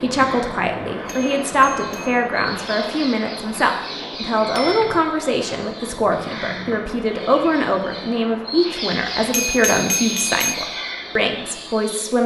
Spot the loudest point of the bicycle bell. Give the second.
10 s.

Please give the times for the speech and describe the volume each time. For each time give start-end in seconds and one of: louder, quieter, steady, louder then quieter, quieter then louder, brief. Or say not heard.
0.0-12.2 steady.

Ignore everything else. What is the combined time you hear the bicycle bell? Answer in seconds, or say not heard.
3 s.